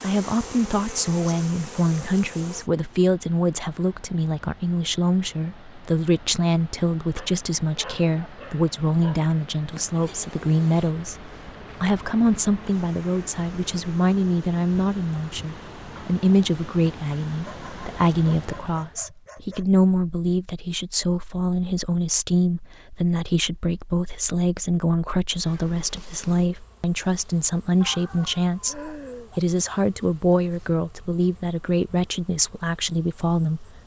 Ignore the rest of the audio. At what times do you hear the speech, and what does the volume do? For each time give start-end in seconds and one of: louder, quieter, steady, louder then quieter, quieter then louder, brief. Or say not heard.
0.0-33.6 steady.